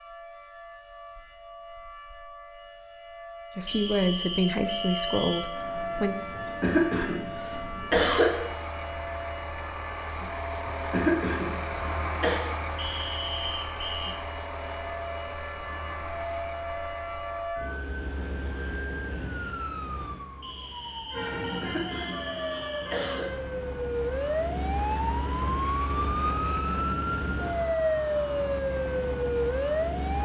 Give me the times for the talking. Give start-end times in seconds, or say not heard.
3.5-6.2.